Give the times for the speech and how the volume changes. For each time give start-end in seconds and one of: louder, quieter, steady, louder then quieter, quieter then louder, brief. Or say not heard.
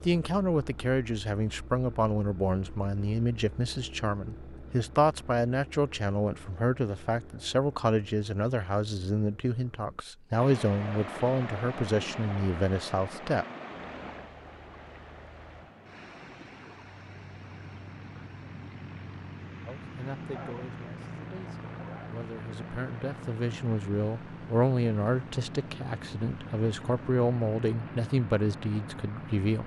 0.1-13.4 steady
19.6-29.6 louder.